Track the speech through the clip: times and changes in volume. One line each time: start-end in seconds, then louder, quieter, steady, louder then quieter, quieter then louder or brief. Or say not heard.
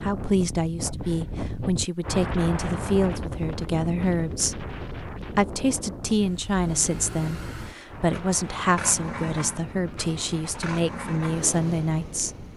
0.0-12.4 steady.